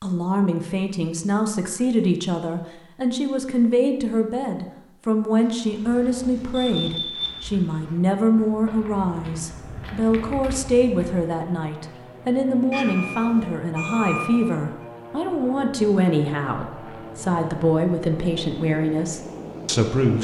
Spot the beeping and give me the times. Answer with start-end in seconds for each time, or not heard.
6.7-7.4, 12.7-14.6.